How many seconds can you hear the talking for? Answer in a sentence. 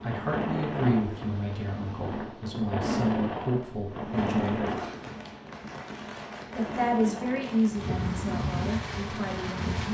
You can hear the talking for 8 seconds altogether.